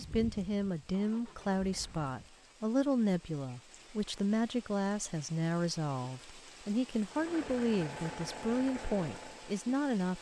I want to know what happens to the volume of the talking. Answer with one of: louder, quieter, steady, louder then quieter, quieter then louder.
steady.